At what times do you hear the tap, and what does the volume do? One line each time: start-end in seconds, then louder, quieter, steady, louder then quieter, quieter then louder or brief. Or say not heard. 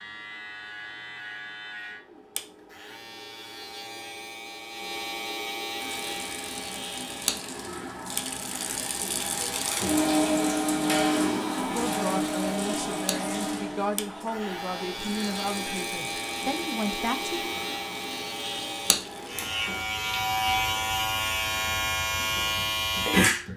5.8-23.5 louder then quieter.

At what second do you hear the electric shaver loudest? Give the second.
23 s.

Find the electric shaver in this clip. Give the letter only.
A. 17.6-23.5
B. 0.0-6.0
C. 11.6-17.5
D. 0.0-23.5
D.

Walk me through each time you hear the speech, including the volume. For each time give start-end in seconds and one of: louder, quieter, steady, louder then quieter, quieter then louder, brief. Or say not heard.
11.6-17.5 steady.